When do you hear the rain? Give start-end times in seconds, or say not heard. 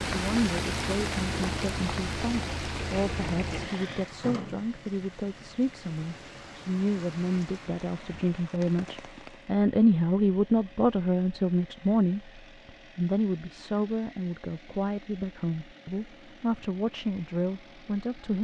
0.0-9.6.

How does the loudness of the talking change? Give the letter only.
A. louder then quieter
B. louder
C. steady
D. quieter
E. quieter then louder
A.